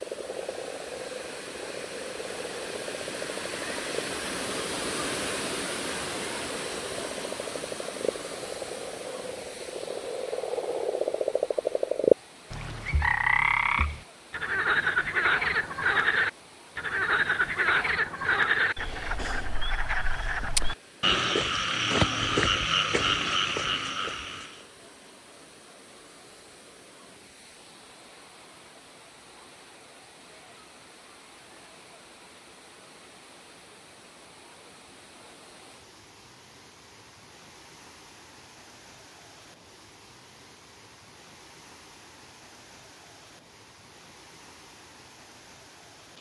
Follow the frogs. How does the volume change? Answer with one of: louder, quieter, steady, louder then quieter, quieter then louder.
louder.